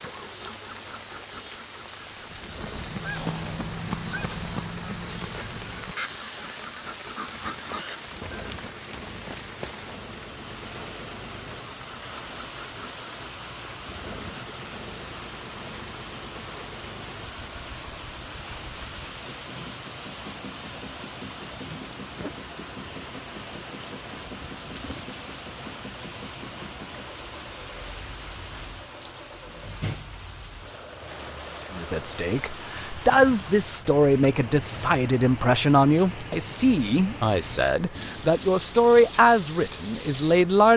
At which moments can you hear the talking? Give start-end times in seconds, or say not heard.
31.7-40.7.